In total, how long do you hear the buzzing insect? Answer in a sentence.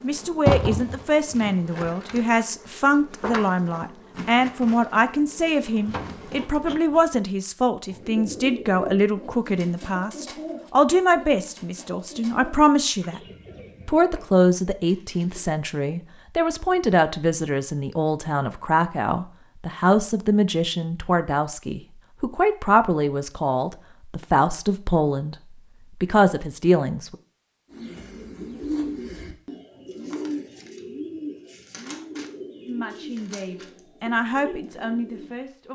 The buzzing insect can be heard for 7 seconds in total.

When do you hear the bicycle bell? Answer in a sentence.
The bicycle bell can't be heard in this clip.